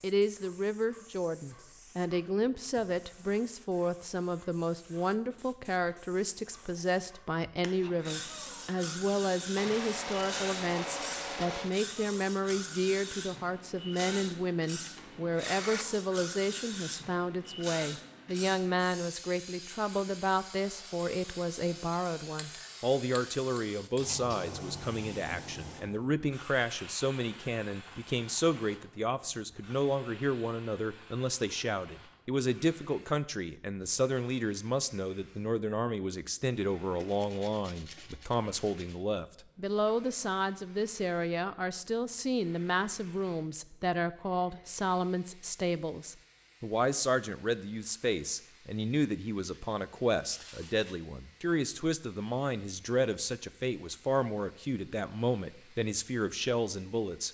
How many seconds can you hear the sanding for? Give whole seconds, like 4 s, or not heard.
7 s.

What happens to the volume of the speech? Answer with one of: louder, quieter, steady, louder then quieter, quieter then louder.
steady.